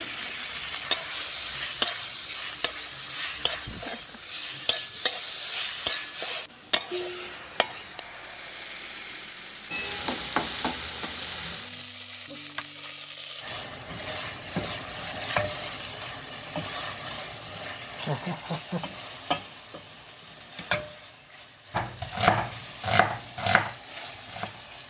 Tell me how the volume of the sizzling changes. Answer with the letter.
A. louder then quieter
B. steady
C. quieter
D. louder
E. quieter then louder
C.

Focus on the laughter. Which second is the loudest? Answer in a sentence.
The loudest moment of the laughter is at 18 seconds.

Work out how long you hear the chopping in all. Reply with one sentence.
The chopping can be heard for 3 seconds in total.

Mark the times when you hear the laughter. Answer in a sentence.
The laughter can be heard from 3.6 to 4.2 s and from 18.0 to 19.1 s.